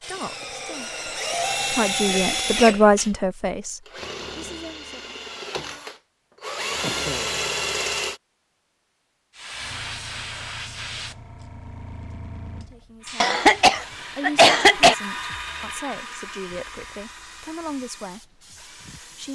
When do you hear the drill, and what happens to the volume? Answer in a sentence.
You can hear the drill from 0.0 to 8.2 s, getting quieter then louder; and from 13.0 to 19.2 s, getting louder then quieter.